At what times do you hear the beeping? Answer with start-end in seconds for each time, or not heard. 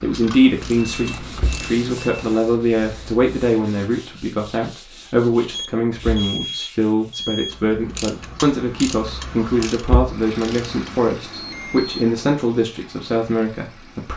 0.7-2.5, 5.5-7.5, 11.3-11.9.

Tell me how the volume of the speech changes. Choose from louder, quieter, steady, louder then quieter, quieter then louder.
steady.